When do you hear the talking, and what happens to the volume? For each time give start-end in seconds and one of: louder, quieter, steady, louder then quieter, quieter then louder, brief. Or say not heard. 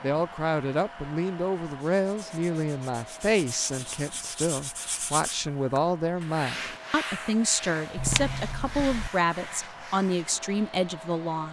0.0-11.4 steady.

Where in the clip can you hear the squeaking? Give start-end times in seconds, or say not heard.
8.0-9.1.